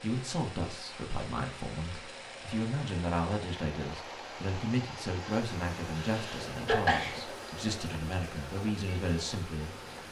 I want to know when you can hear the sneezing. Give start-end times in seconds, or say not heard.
6.0-7.2.